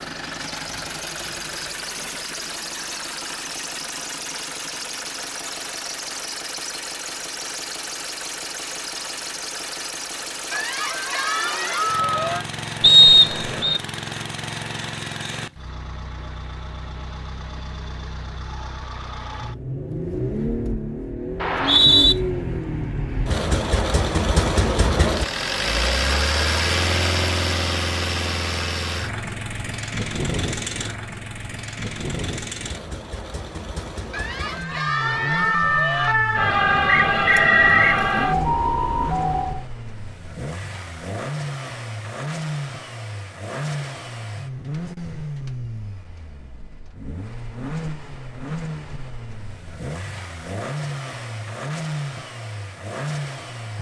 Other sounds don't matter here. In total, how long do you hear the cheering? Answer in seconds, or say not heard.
4 s.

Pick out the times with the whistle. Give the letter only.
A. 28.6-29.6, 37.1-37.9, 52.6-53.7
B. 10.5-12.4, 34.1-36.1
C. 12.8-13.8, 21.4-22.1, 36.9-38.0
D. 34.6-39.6
C.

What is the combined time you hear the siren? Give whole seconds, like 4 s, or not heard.
5 s.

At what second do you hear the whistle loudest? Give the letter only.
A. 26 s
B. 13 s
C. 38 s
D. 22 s
B.